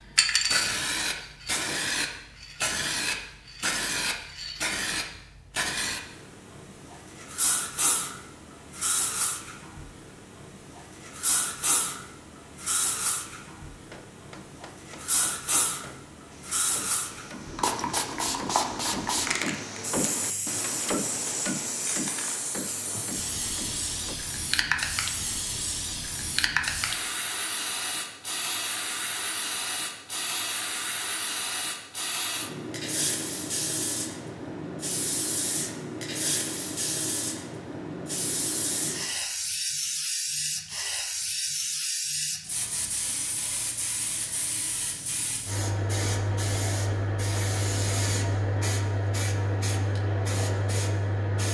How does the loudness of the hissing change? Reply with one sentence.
The volume of the hissing stays about the same.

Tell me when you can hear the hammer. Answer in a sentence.
The hammer can be heard from 13.8 to 24.1 s.